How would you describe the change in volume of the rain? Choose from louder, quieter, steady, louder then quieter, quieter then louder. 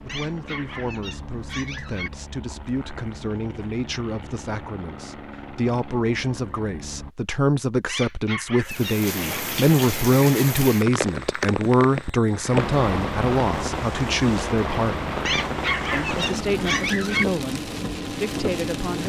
steady.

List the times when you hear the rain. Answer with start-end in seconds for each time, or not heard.
8.7-19.0.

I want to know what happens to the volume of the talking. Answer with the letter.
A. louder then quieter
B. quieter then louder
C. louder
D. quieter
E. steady
A.